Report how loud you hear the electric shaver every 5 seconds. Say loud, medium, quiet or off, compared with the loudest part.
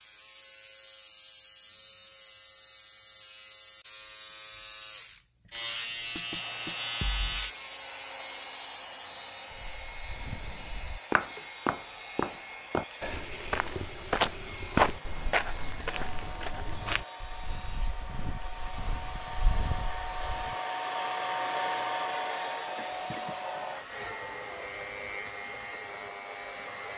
medium, loud, medium, medium, medium, medium.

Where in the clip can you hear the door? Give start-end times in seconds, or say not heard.
not heard.